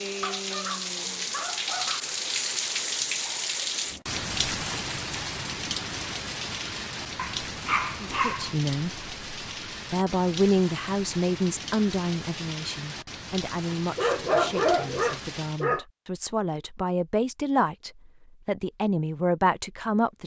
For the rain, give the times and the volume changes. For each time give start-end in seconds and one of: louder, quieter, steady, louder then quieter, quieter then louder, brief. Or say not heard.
0.0-15.7 quieter.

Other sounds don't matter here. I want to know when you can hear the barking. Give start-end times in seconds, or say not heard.
0.2-2.1, 7.2-8.6, 13.9-15.8.